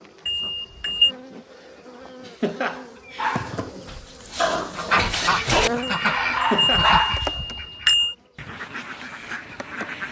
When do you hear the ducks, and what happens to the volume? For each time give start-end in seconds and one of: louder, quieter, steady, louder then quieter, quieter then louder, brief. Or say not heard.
4.8-10.0 quieter.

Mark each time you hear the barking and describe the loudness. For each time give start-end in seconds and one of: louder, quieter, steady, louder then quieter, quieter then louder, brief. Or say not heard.
3.1-7.4 louder.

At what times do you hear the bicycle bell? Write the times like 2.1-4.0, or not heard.
0.2-1.1, 5.8-8.2.